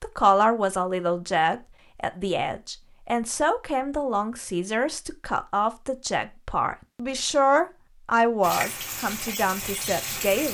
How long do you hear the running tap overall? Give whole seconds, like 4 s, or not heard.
2 s.